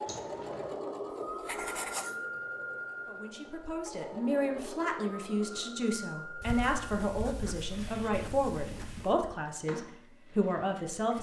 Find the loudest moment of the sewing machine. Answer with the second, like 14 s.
1 s.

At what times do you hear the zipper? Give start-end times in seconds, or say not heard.
0.1-0.8.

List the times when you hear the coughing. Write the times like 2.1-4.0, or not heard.
not heard.